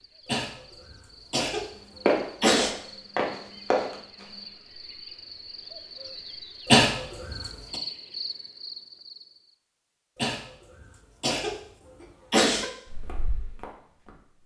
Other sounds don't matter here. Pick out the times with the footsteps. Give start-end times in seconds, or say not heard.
2.0-4.2, 12.8-14.4.